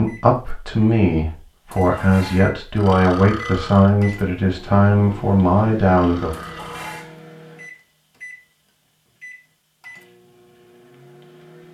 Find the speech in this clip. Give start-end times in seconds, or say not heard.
0.0-6.3.